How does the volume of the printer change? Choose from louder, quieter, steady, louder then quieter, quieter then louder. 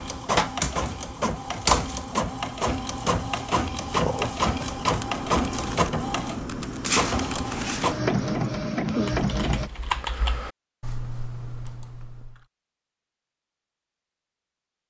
steady.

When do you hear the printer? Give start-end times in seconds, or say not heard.
0.0-9.7.